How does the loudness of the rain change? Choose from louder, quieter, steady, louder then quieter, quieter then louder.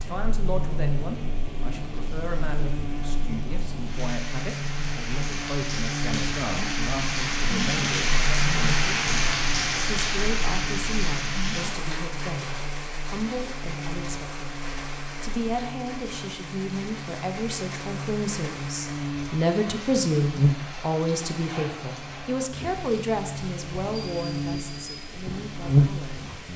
louder then quieter.